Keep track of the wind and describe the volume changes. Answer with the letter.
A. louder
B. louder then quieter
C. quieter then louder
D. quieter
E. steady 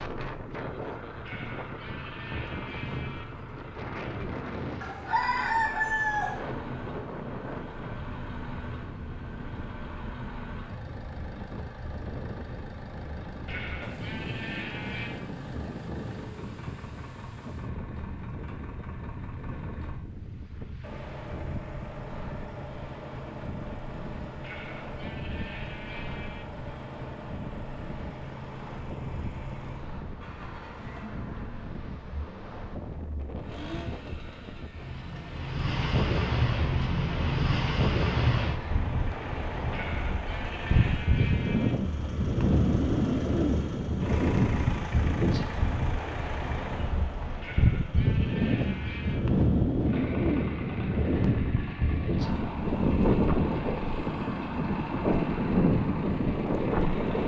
A.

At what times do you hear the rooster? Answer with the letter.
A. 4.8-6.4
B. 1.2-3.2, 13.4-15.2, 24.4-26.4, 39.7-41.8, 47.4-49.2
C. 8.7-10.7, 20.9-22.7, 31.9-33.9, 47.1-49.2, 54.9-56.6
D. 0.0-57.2
A.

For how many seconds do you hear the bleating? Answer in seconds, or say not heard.
10 s.